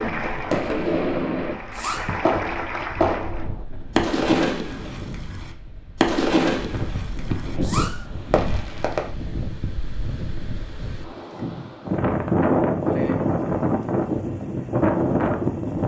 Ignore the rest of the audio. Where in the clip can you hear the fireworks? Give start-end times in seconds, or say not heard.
0.5-9.1.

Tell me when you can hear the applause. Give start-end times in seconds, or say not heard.
0.0-3.5.